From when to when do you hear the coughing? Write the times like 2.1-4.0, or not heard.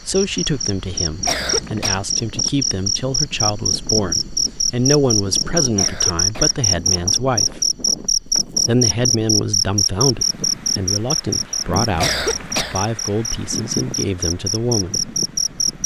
1.2-2.0, 5.8-6.7, 11.9-12.8.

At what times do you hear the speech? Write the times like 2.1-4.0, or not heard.
0.1-7.6, 8.7-15.0.